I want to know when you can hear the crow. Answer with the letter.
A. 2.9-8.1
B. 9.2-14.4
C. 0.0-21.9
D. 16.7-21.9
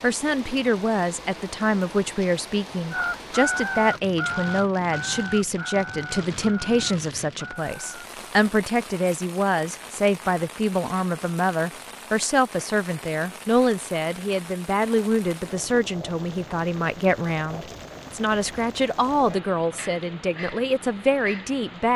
A.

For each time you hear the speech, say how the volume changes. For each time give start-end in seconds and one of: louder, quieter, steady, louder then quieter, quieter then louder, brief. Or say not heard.
0.0-21.9 steady.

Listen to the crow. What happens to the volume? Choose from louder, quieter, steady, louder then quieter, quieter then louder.
quieter.